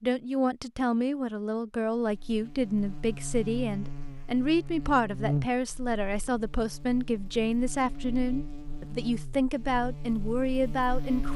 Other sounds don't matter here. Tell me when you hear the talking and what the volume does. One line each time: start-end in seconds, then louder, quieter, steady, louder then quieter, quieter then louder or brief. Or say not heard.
0.0-11.3 steady.